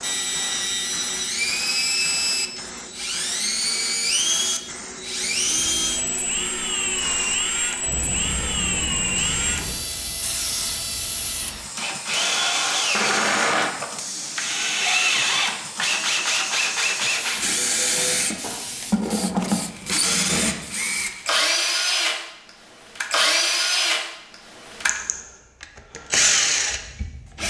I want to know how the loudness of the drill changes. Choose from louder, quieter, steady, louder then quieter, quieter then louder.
steady.